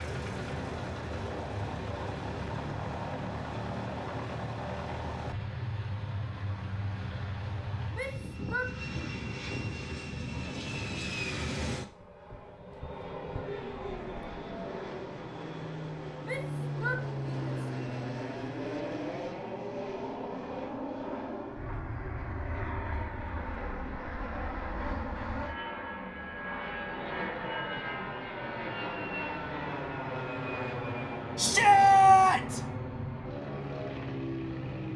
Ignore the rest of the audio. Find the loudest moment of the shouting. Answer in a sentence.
The volume of the shouting peaks at 32 seconds.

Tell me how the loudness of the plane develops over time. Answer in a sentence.
The loudness of the plane stays about the same.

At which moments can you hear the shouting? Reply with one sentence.
You can hear the shouting from 7.9 to 9.1 s, from 16.2 to 17.6 s and from 31.4 to 32.6 s.